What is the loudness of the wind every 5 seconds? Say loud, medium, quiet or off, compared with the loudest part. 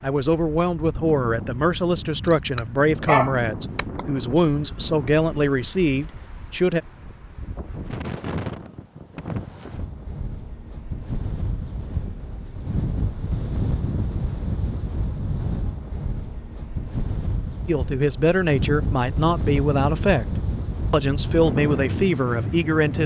medium, medium, loud, loud, loud.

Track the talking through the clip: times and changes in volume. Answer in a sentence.
The talking can be heard from 0.0 to 6.8 s, at a steady volume; and from 17.6 to 23.0 s, at a steady volume.